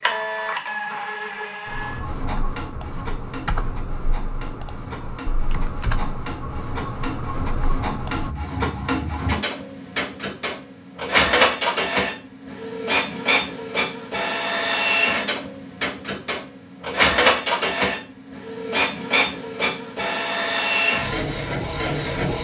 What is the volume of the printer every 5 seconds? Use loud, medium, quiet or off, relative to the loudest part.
medium, medium, loud, loud, loud.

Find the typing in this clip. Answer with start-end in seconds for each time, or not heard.
1.6-8.3.